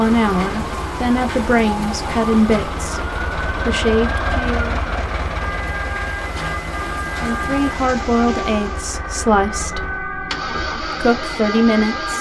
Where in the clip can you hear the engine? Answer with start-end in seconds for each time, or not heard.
0.0-12.1.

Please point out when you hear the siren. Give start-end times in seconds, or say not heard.
0.0-12.1.